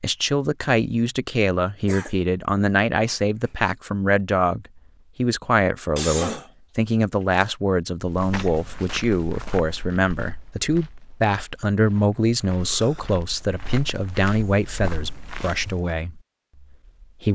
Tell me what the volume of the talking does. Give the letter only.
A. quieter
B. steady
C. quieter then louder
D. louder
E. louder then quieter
B.